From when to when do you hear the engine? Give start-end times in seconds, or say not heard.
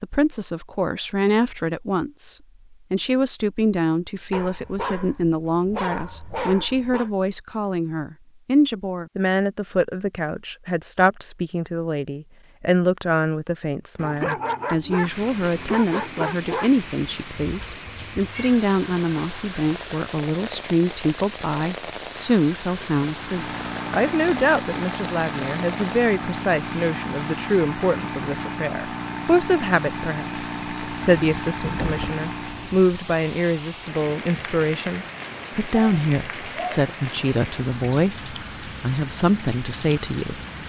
23.0-32.9.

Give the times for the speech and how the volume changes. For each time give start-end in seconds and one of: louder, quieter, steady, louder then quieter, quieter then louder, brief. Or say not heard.
0.0-40.6 steady.